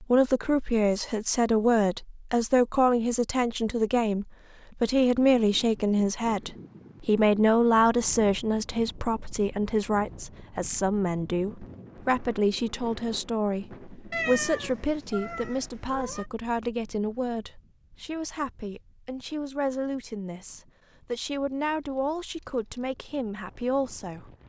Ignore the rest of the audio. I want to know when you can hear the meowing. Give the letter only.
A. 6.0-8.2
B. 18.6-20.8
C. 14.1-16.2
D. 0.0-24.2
C.